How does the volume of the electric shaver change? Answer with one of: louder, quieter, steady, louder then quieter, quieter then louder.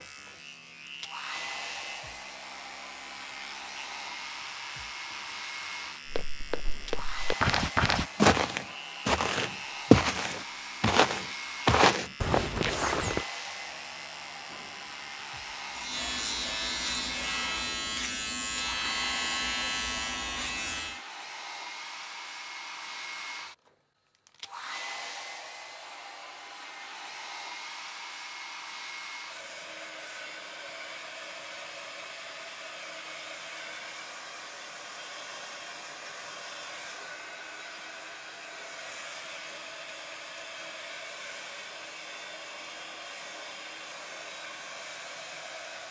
louder.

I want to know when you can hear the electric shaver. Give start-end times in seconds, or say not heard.
0.0-21.0.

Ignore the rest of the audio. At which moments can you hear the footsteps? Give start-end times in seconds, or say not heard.
6.0-13.2.